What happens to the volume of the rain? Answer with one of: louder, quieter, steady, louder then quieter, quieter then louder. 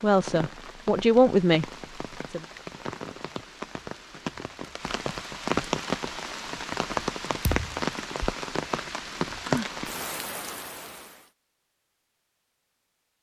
louder.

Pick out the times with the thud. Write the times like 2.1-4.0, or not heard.
7.4-7.8.